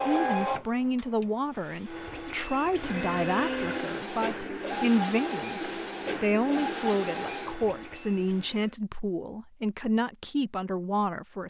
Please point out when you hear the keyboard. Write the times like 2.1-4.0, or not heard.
not heard.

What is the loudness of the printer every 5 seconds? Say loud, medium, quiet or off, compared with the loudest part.
loud, loud, off.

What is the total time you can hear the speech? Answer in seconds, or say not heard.
11 s.